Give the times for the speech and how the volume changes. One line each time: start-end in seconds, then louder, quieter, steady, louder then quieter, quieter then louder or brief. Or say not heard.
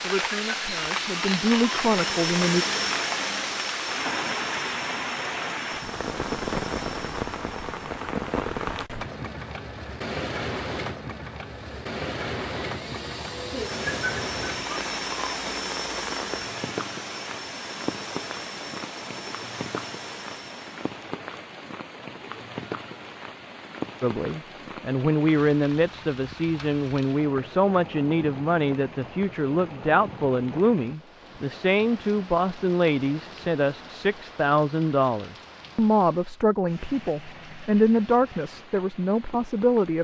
0.0-2.6 brief
24.0-39.9 steady.